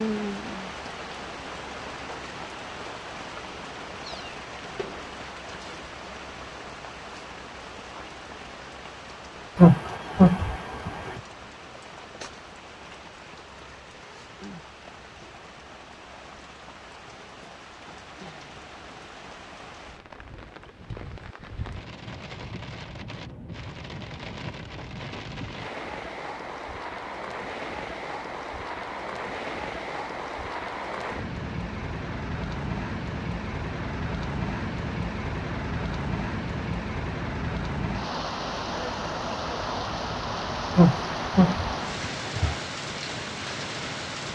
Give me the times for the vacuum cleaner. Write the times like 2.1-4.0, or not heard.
not heard.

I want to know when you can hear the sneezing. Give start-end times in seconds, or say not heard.
9.6-11.2, 40.8-42.6.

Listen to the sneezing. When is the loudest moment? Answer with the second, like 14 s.
10 s.